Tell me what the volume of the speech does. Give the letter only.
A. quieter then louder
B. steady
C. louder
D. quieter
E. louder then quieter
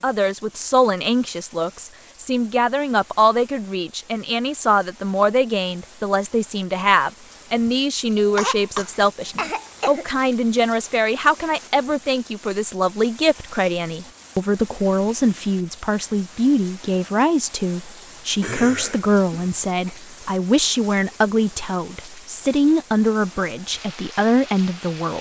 B.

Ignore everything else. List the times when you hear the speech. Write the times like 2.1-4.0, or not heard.
0.0-25.1.